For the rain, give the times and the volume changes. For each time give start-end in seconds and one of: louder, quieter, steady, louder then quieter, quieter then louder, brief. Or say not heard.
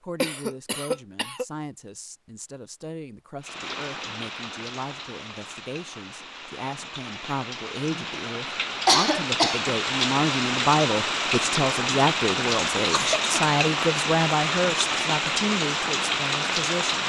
3.4-17.0 louder.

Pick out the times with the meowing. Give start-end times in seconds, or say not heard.
not heard.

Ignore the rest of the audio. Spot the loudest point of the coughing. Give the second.
9 s.